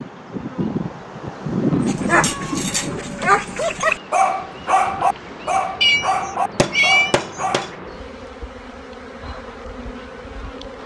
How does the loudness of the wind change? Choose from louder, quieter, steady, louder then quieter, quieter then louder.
quieter.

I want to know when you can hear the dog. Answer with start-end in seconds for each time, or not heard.
1.8-7.7.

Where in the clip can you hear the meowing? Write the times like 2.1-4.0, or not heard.
2.1-3.4, 5.8-7.5.